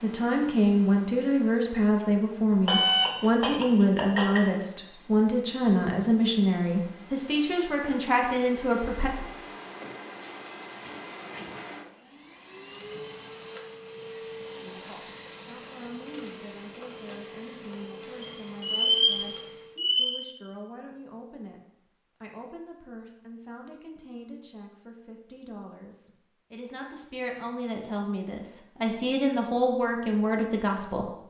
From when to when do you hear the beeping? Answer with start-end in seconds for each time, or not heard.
2.6-4.5, 18.2-20.1.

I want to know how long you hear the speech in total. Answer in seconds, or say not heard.
25 s.